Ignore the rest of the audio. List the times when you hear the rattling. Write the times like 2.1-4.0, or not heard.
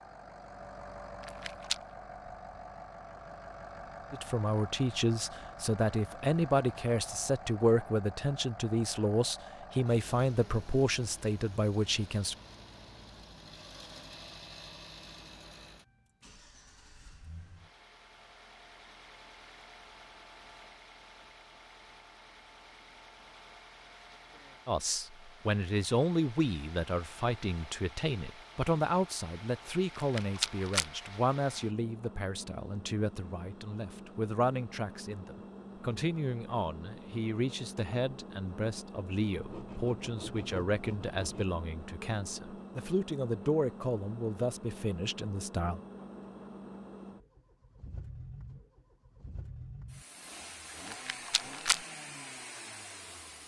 1.2-1.8, 29.9-30.9, 50.9-51.8.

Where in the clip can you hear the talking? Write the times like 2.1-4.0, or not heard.
4.1-12.3, 24.6-45.8.